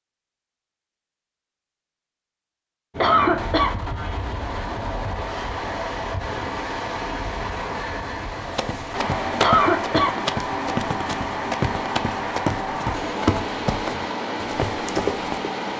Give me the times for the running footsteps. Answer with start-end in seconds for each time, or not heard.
8.4-15.5.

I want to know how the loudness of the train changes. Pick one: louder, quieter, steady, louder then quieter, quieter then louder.
steady.